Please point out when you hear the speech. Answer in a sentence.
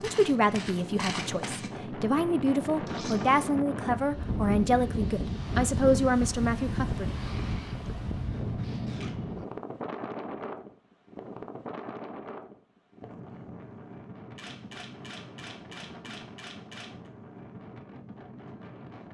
The speech can be heard from 0.0 to 7.2 s.